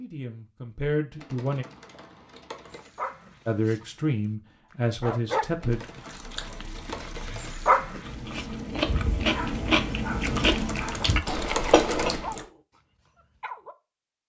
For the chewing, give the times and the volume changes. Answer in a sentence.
The chewing can be heard from 6.0 to 12.4 s, getting louder.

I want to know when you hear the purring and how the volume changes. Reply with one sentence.
You can't hear the purring here.